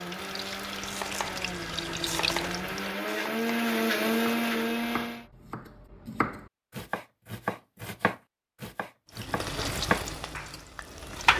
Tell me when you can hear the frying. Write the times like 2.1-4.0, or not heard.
0.0-3.0, 9.2-11.3.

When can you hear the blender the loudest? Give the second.
4 s.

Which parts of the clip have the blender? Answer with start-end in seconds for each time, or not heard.
0.0-5.3.